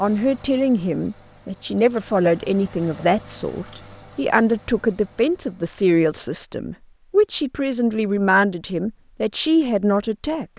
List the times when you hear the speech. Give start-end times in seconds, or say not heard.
0.0-10.4.